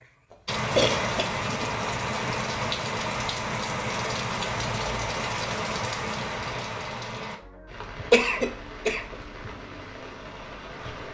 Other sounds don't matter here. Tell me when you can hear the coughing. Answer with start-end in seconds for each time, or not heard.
0.8-1.7, 8.1-9.2.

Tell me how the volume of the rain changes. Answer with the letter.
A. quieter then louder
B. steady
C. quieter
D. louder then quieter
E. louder
C.